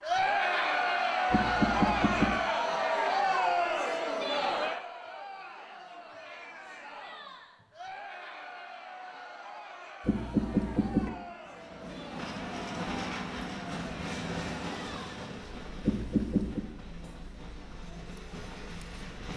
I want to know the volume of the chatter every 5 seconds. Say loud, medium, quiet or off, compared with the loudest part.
loud, quiet, quiet, quiet.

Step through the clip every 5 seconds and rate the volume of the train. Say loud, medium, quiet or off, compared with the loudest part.
off, off, loud, medium.